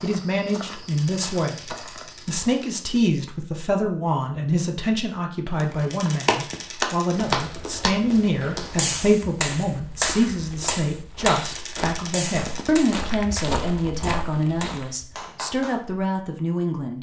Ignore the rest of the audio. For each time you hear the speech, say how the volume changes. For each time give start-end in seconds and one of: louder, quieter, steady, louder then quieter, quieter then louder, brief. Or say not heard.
0.0-16.9 steady.